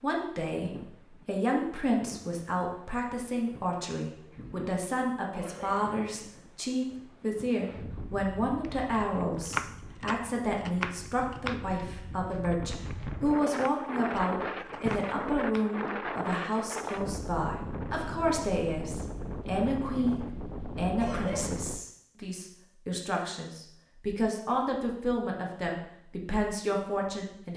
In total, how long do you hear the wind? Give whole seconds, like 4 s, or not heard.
22 s.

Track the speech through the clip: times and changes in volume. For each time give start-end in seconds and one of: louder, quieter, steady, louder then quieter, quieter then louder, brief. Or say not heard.
0.0-27.5 steady.